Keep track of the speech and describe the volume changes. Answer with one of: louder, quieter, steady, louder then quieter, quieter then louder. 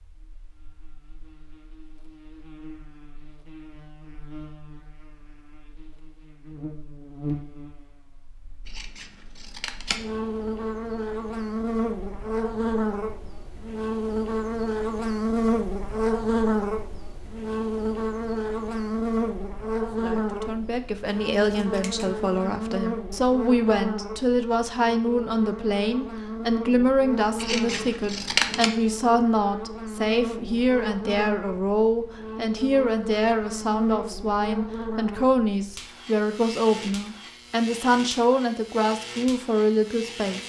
steady.